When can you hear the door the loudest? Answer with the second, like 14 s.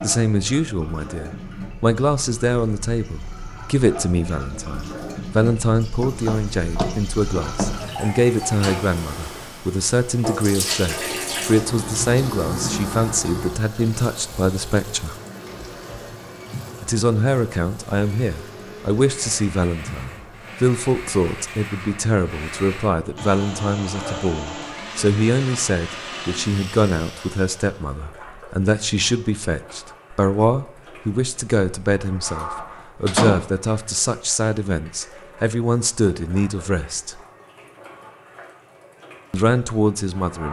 33 s.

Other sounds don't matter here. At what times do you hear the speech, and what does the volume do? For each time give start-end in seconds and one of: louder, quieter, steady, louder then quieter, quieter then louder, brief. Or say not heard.
0.0-15.2 steady
16.8-37.1 steady
39.3-40.4 brief.